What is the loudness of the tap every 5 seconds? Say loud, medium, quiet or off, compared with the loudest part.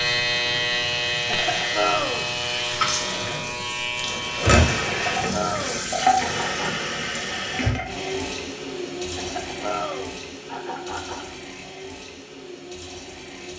loud, loud, medium.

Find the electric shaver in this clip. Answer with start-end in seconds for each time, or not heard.
0.0-5.0.